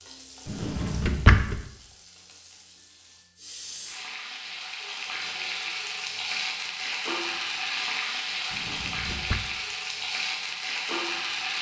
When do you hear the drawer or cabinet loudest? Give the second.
1 s.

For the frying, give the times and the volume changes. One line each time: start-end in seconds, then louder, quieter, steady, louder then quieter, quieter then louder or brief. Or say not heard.
0.0-11.5 louder.